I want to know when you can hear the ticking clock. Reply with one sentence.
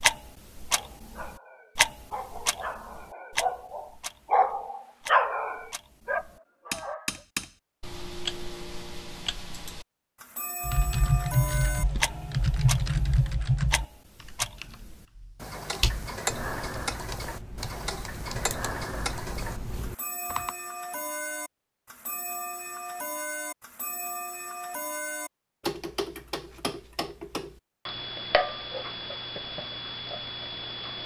You can hear the ticking clock from 0.0 to 31.0 s.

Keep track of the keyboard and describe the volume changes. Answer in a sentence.
The loudness of the keyboard goes down.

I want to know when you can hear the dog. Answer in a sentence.
The dog can be heard from 0.7 to 7.2 s.